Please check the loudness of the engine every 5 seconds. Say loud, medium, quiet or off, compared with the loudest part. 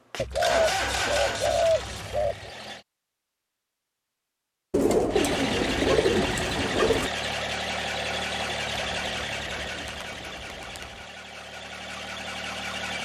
loud, loud, medium.